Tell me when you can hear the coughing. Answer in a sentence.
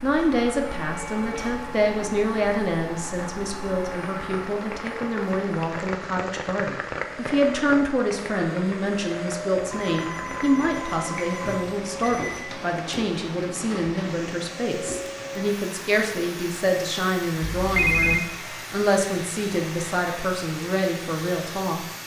The coughing can't be heard in this clip.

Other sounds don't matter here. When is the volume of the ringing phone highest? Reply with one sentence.
The volume of the ringing phone peaks at 18 seconds.